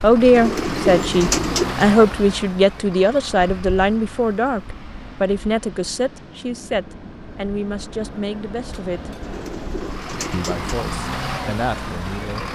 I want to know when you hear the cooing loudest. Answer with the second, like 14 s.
1 s.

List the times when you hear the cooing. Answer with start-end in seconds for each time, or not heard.
0.3-1.9, 9.2-10.8.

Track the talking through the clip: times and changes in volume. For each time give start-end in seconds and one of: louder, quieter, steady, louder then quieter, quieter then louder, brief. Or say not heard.
0.0-9.2 quieter
10.3-12.4 brief.